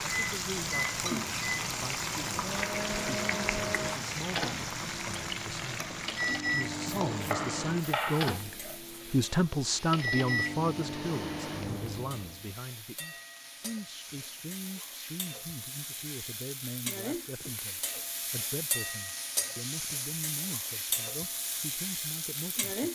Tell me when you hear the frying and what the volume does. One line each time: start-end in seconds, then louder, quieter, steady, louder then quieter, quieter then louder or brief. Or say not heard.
0.0-22.8 quieter then louder.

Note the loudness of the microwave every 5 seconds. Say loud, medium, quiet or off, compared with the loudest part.
loud, loud, loud, off, off.